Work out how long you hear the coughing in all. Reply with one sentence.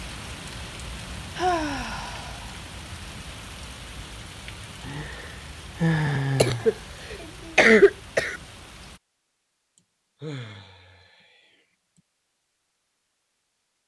The coughing can be heard for 2 seconds in total.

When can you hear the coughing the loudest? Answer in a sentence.
The loudest moment of the coughing is at 8 seconds.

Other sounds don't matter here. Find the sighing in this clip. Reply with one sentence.
You can hear the sighing from 1.4 to 3.0 s, from 4.8 to 6.8 s and from 9.8 to 12.0 s.